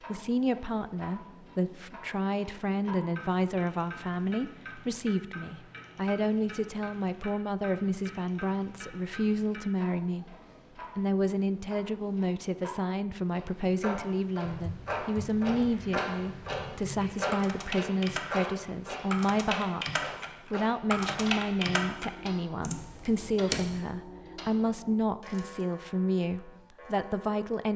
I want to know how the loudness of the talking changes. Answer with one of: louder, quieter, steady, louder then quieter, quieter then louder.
steady.